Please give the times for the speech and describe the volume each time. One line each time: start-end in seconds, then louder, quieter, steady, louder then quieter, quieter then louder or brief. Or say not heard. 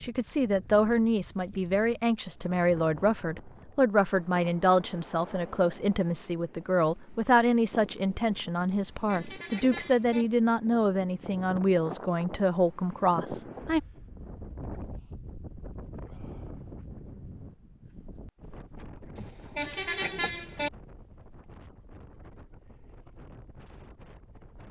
0.0-13.8 steady.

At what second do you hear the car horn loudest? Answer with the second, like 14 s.
20 s.